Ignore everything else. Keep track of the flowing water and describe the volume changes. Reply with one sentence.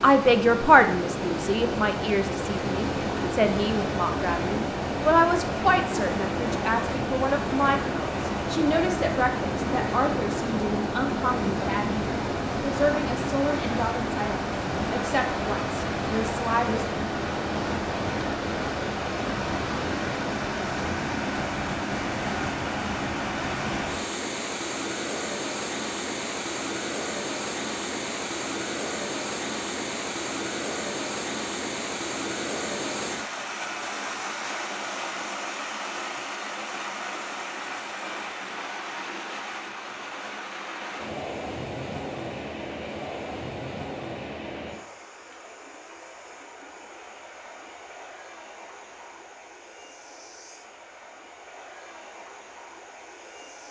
The loudness of the flowing water goes down.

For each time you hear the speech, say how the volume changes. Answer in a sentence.
You can hear the speech from 0.0 to 16.9 s, getting quieter.